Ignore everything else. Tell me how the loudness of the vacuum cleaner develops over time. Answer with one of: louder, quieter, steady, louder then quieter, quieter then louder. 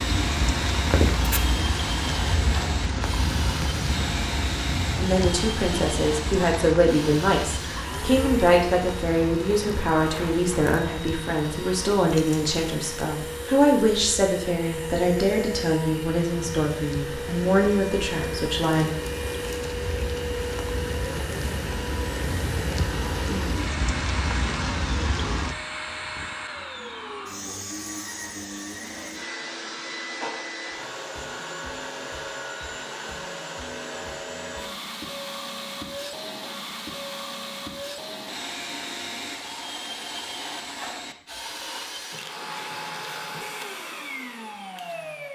steady.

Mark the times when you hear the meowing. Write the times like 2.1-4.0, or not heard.
0.9-1.7.